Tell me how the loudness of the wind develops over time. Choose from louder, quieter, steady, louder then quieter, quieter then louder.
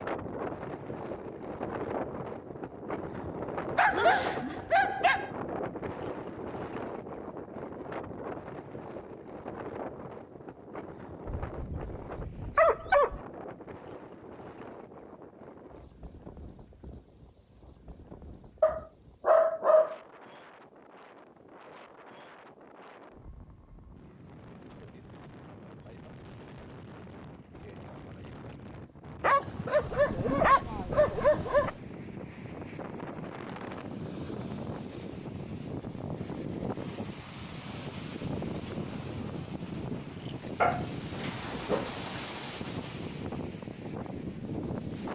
quieter then louder.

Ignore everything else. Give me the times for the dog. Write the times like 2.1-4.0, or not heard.
3.8-5.3, 11.2-13.2, 18.6-19.9, 29.2-31.7, 40.6-42.2.